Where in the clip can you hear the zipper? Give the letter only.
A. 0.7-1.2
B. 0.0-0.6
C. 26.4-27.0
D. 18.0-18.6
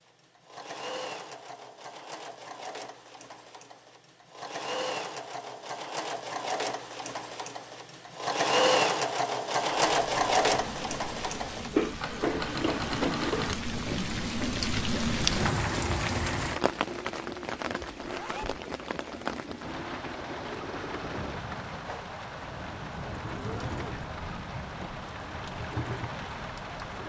D.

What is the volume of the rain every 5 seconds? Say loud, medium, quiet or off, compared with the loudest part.
off, off, loud, loud, medium, medium.